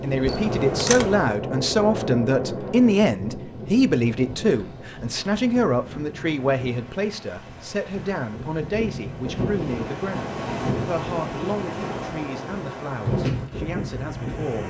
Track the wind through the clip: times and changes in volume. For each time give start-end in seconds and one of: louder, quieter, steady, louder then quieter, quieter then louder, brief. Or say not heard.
0.0-14.6 quieter then louder.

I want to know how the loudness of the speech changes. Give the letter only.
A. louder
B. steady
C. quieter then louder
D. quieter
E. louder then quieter
D.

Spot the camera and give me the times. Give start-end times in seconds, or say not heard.
0.2-1.4.